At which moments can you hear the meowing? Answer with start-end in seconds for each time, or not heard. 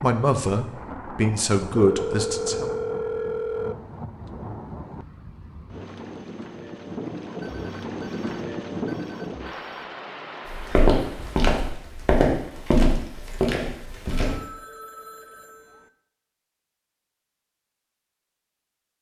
not heard.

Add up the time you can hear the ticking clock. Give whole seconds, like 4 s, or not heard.
not heard.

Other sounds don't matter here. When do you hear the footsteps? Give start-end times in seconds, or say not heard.
10.5-14.3.